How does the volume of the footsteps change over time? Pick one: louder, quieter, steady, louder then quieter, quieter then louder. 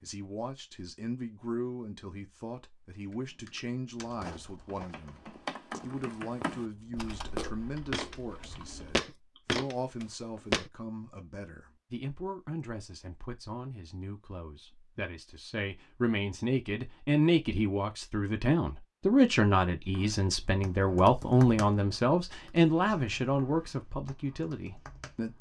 louder.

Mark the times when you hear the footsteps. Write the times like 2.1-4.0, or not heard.
4.0-10.7.